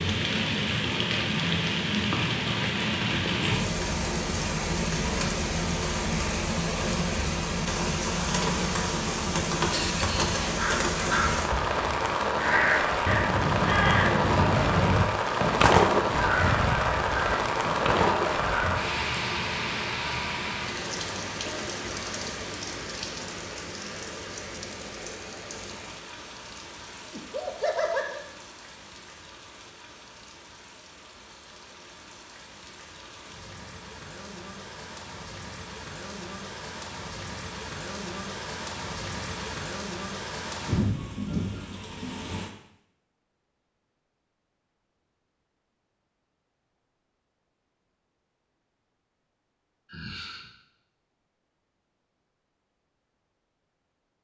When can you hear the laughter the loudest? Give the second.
28 s.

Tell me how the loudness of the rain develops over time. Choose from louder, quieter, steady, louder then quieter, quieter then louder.
quieter then louder.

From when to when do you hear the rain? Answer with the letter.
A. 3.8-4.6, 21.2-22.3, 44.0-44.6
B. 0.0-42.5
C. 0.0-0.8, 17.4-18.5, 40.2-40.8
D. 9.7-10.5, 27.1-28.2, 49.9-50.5
B.